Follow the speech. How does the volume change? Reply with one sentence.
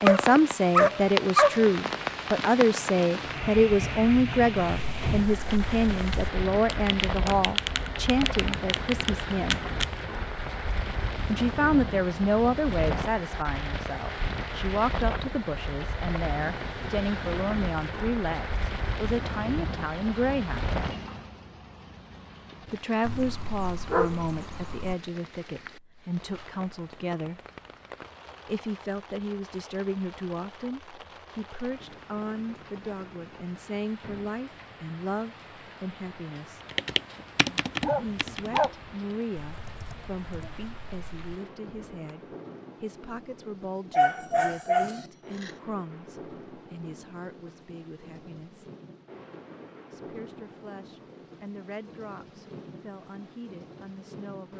The loudness of the speech goes down.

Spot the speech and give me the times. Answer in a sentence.
You can hear the speech from 0.0 to 9.6 s, from 11.2 to 20.8 s, from 22.6 to 27.4 s, from 28.4 to 36.6 s, from 38.0 to 48.6 s and from 49.9 to 54.5 s.